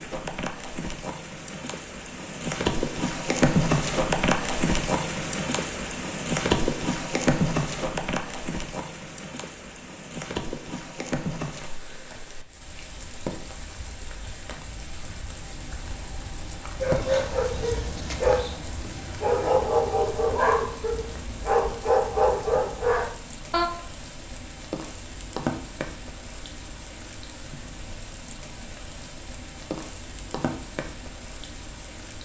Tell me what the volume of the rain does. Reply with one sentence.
The volume of the rain goes down.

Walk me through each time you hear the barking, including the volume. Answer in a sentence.
You can hear the barking from 16.8 to 23.7 s, at a steady volume.